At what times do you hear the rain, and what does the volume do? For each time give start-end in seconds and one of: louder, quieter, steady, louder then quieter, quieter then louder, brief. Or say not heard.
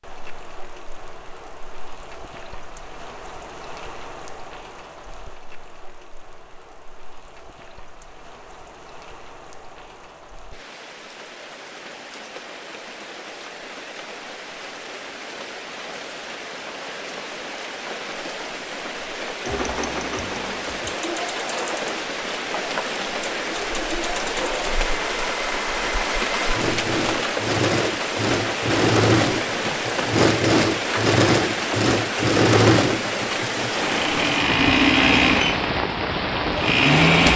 0.0-37.3 louder.